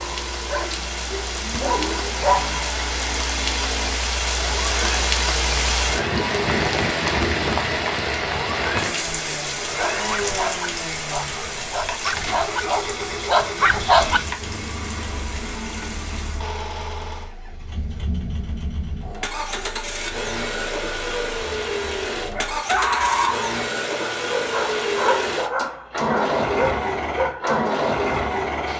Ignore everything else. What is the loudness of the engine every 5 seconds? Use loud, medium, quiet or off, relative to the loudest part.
medium, medium, medium, medium, loud, loud.